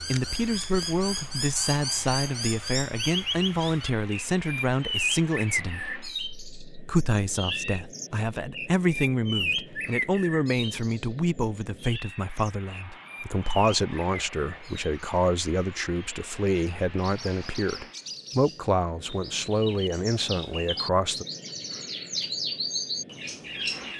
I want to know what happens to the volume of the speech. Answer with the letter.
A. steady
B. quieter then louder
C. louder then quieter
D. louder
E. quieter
A.